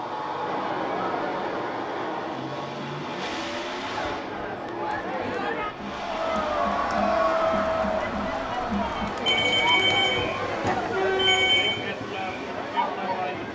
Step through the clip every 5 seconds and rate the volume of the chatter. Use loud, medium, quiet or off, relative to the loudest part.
medium, loud, loud.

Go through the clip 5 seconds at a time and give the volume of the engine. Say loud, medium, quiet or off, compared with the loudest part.
loud, medium, medium.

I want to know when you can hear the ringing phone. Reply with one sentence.
The ringing phone can be heard from 9.2 to 11.8 s.